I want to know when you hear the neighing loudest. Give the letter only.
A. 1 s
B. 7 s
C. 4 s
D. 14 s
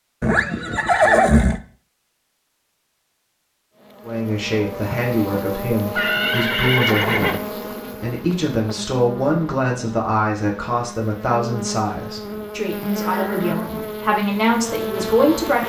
A.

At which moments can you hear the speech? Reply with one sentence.
You can hear the speech from 4.0 to 15.6 s.